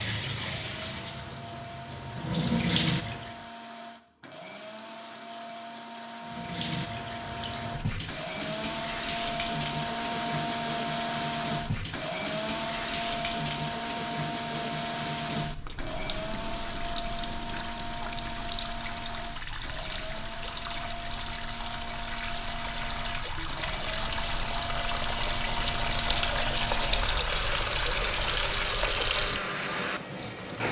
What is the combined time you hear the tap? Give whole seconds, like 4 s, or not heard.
28 s.